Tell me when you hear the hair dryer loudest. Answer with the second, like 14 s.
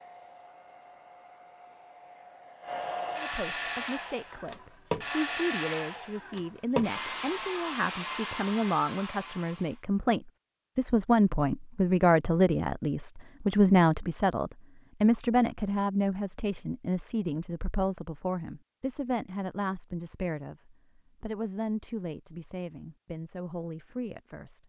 5 s.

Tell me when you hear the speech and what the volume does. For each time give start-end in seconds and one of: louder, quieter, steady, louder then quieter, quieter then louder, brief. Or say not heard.
3.1-24.6 louder then quieter.